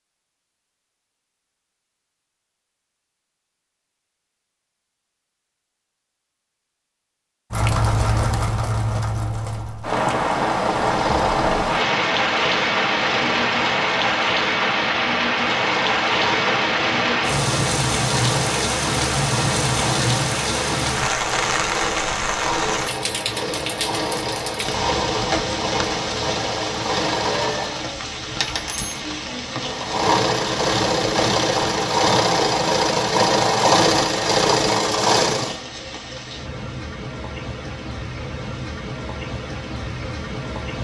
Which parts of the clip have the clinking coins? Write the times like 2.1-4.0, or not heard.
28.4-29.0.